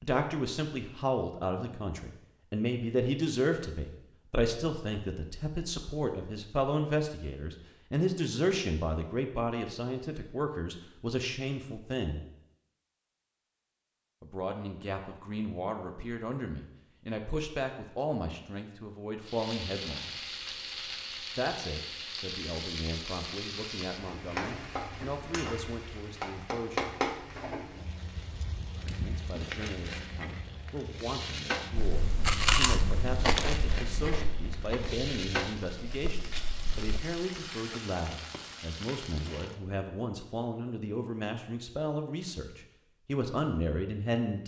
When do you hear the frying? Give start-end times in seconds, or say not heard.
19.2-39.6.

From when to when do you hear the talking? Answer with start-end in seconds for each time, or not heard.
0.0-12.2, 14.2-20.1, 21.4-27.0, 28.9-44.4.